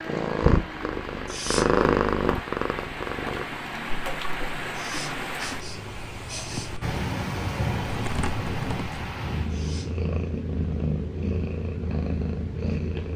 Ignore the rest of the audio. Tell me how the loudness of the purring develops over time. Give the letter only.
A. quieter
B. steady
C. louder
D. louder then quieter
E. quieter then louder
E.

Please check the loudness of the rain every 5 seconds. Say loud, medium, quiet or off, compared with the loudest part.
loud, loud, off.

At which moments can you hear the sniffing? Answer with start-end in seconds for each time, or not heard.
1.2-1.8, 4.7-6.8, 9.5-10.1.